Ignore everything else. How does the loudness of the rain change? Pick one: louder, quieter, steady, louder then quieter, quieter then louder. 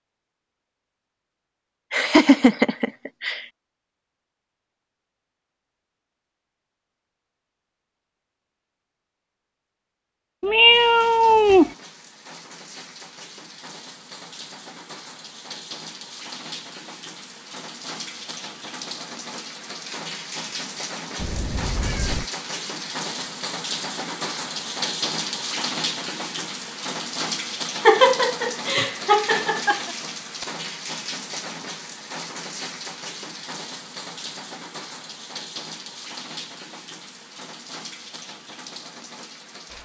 louder then quieter.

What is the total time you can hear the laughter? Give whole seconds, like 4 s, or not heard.
4 s.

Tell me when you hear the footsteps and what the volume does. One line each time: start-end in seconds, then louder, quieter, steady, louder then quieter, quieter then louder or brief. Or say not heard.
not heard.